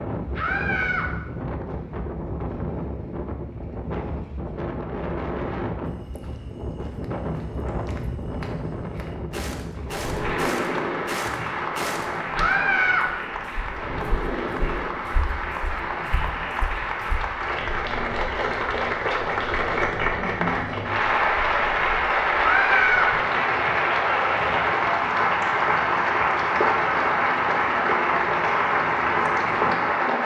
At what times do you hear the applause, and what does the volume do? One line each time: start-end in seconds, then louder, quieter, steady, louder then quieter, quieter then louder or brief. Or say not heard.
10.2-30.2 louder.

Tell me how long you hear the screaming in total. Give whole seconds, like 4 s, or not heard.
2 s.